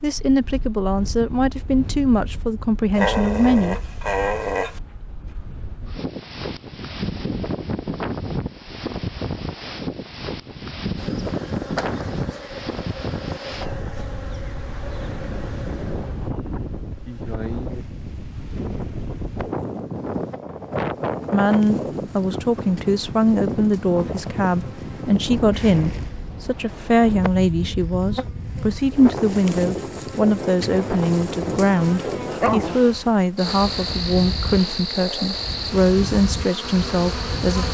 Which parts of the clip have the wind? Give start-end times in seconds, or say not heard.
0.0-37.6.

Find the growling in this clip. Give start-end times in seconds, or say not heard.
3.0-4.8, 32.2-32.8.